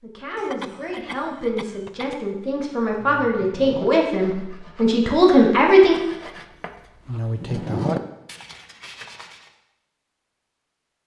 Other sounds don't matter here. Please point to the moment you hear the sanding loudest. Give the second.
8 s.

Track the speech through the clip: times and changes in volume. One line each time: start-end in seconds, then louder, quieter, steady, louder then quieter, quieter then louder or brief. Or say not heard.
0.0-6.0 louder.